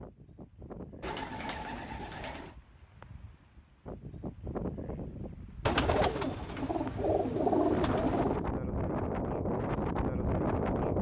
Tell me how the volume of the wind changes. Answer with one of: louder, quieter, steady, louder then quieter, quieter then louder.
louder.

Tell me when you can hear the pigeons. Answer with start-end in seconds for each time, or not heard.
1.0-2.5, 5.7-8.4.